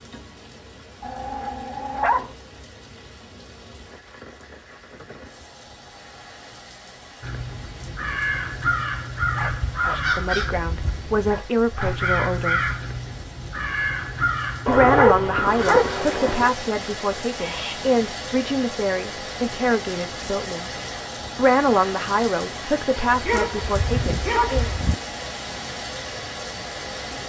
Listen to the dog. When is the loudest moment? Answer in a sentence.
The loudest moment of the dog is at 15 seconds.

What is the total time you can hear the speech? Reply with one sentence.
You can hear the speech for 12 seconds altogether.